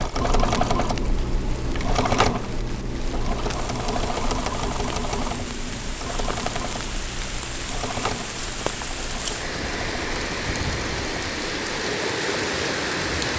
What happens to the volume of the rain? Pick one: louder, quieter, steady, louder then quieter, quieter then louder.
louder.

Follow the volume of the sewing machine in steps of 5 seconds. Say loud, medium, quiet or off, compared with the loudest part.
loud, medium, medium.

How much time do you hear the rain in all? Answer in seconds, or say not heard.
13 s.